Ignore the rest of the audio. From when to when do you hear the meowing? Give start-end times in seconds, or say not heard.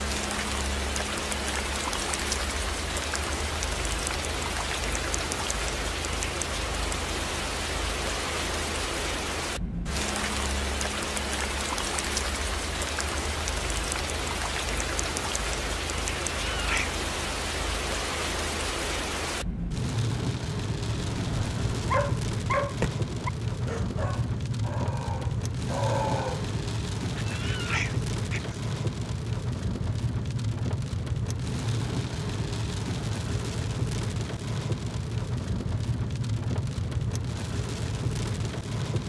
16.3-17.0, 27.1-28.6.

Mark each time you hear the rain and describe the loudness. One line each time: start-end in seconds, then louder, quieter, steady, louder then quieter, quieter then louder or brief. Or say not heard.
0.0-39.0 steady.